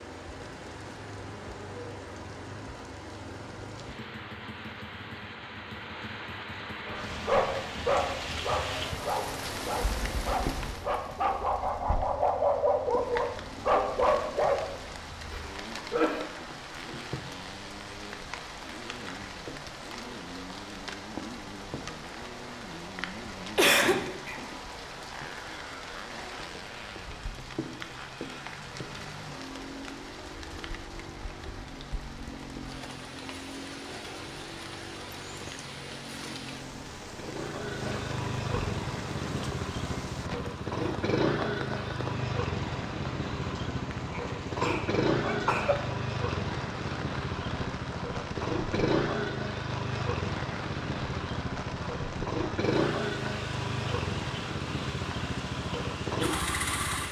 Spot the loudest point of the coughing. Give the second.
24 s.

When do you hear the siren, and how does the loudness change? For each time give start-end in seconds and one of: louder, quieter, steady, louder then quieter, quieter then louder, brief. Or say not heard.
not heard.